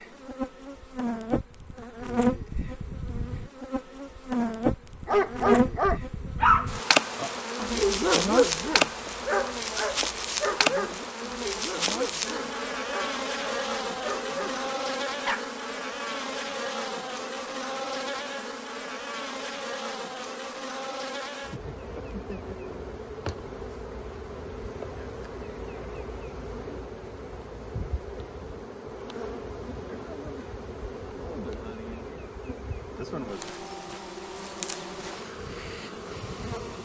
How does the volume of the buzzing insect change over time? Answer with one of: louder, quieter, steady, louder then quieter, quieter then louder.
quieter.